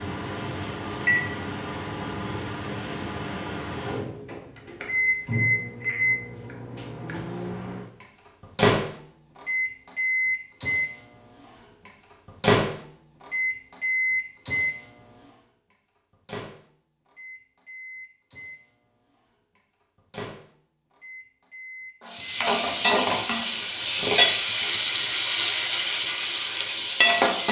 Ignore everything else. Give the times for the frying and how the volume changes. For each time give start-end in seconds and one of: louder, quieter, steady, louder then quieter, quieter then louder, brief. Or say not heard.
22.1-27.4 quieter.